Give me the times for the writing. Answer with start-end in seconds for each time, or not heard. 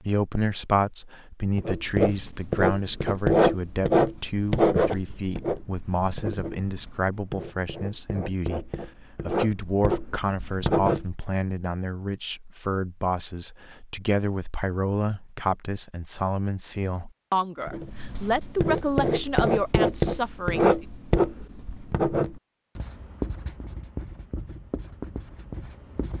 1.6-11.1, 17.6-26.1.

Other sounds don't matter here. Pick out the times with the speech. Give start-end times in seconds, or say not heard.
0.0-20.8.